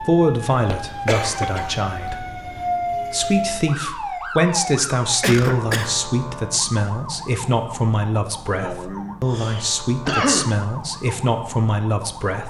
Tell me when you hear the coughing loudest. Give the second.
10 s.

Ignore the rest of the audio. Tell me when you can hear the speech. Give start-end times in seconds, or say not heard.
0.0-12.4.